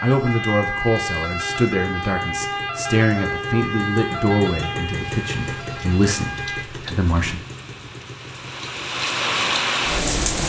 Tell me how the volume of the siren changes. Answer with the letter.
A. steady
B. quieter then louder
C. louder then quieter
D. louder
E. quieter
E.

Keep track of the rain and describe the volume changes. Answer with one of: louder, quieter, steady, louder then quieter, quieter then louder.
louder.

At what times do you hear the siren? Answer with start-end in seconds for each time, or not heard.
0.0-6.7.